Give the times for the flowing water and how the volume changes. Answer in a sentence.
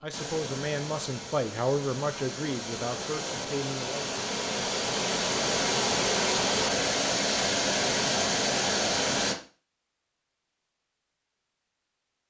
The flowing water can be heard from 0.0 to 9.3 s, getting louder.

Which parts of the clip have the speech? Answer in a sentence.
The speech can be heard from 0.0 to 4.2 s.